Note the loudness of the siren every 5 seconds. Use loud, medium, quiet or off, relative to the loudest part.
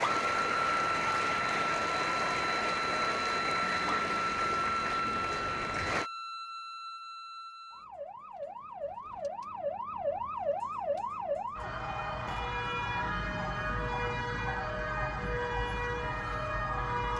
loud, medium, loud, loud.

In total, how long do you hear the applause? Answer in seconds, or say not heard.
6 s.